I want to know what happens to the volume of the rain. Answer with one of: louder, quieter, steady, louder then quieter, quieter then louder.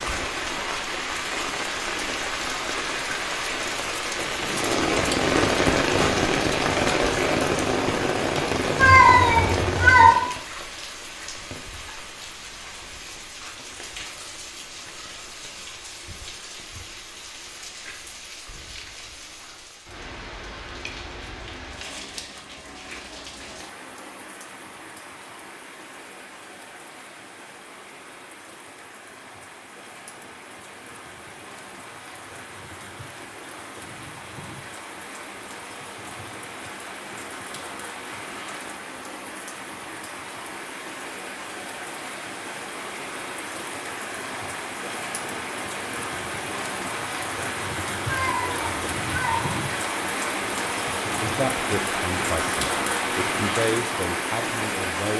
quieter then louder.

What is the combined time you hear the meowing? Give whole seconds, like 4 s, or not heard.
3 s.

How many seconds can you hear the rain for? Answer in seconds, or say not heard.
55 s.